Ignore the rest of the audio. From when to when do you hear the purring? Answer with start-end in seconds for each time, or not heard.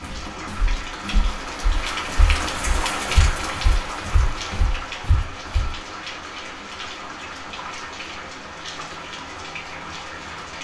not heard.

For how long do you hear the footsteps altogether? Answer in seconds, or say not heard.
6 s.